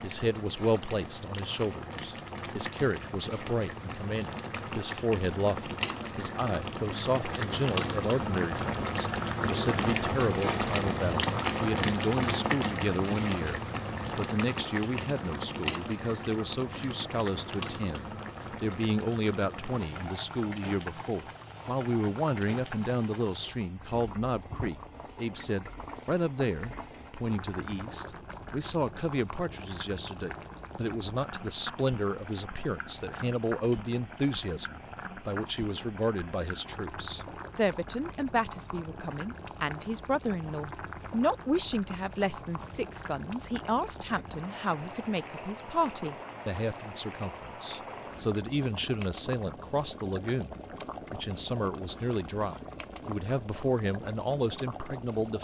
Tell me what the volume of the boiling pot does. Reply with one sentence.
The volume of the boiling pot goes down.